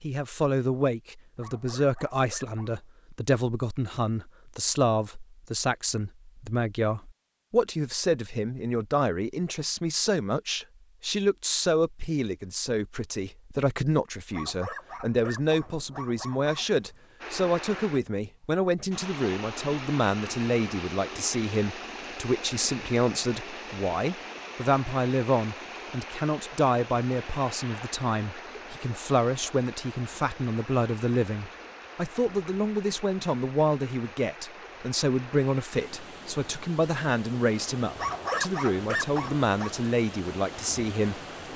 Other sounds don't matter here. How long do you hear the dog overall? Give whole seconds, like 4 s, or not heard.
6 s.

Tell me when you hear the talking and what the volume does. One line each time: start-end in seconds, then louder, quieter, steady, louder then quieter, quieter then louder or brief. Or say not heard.
0.0-41.2 steady.